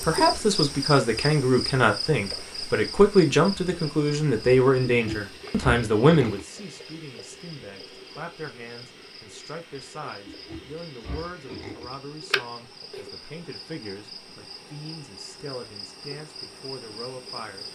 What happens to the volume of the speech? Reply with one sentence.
The loudness of the speech goes down.